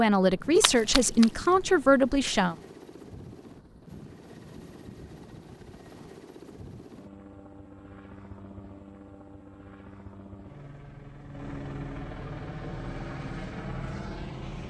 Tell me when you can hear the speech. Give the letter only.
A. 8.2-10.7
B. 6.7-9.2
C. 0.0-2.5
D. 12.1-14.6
C.